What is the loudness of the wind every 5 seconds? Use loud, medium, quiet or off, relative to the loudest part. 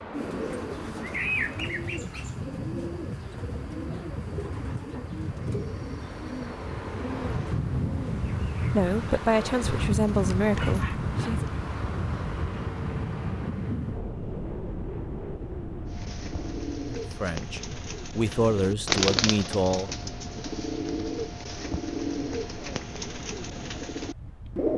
medium, loud, loud, medium, quiet.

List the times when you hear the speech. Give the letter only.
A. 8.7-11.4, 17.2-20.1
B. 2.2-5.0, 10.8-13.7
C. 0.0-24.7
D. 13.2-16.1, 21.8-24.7
A.